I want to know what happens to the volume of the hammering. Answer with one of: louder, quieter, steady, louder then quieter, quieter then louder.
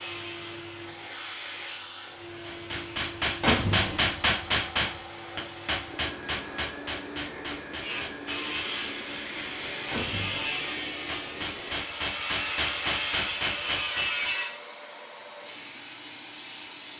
quieter then louder.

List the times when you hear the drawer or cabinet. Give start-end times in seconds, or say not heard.
3.4-4.0, 9.9-10.5.